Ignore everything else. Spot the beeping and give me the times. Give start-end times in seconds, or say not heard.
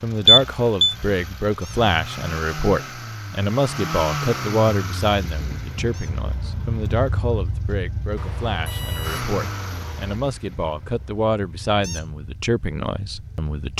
0.2-0.9, 8.2-10.2.